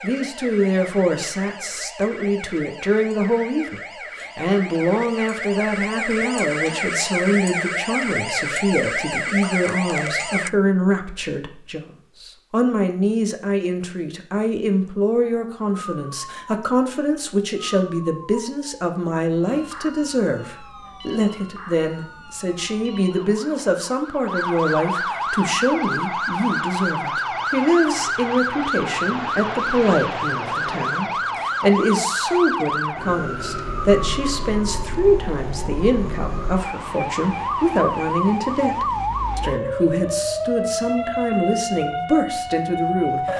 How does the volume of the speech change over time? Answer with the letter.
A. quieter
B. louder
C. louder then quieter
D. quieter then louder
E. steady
E.